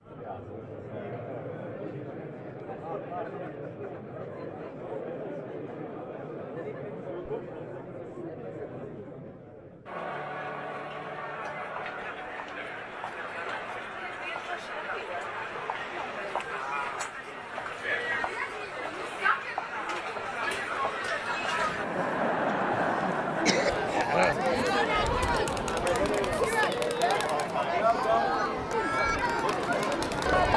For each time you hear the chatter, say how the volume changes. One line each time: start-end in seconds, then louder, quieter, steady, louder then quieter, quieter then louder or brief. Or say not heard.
0.0-30.5 louder.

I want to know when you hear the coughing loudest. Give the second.
24 s.